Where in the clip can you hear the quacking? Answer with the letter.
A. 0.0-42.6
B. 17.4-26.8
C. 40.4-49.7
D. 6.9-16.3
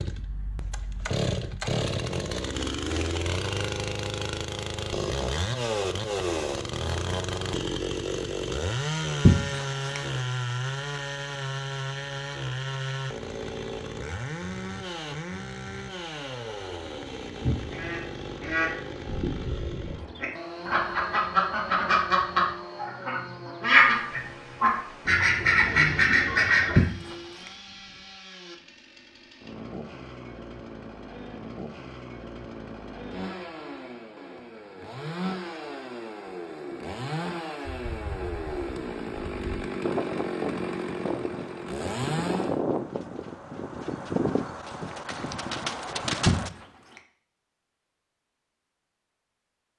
B.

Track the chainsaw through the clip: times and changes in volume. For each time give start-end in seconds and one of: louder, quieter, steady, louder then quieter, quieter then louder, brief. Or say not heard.
0.0-42.6 quieter then louder.